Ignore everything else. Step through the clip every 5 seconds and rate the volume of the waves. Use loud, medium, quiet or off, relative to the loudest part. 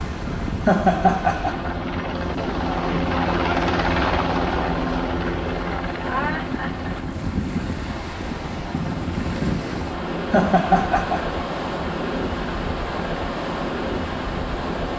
medium, loud, loud.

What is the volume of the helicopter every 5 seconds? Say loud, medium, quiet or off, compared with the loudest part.
loud, medium, medium.